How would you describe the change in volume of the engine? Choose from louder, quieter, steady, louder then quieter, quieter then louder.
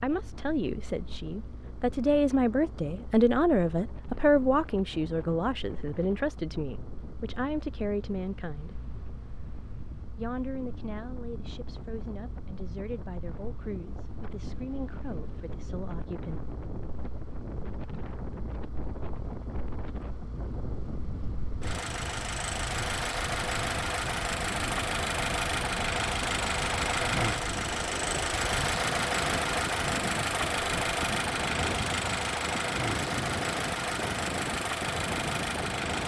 louder.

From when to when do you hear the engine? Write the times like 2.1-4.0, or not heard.
0.1-36.0.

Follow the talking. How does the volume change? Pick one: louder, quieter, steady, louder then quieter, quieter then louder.
quieter.